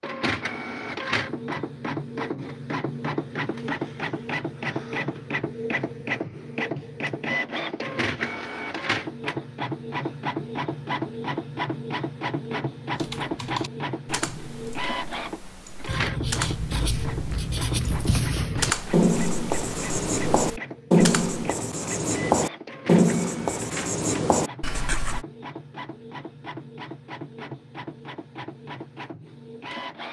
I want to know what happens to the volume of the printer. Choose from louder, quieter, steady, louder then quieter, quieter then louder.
quieter.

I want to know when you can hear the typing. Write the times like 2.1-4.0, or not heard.
12.9-21.4.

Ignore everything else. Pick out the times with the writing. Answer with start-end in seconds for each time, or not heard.
15.8-25.2.